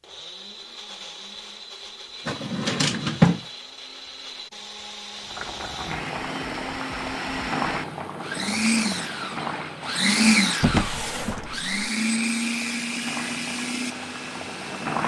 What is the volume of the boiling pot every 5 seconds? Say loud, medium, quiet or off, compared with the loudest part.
off, loud, loud.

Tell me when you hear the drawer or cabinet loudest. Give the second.
3 s.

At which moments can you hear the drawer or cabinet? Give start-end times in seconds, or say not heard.
2.2-3.5, 10.6-11.7.